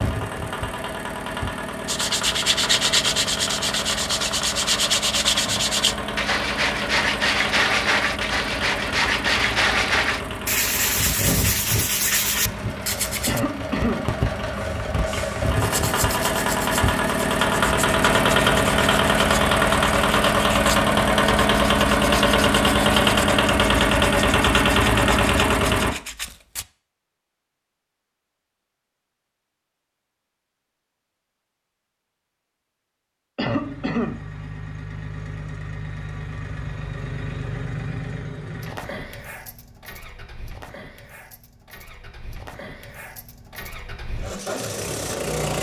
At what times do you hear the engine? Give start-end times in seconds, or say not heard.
0.0-25.9, 33.4-45.5.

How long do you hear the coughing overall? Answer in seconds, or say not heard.
2 s.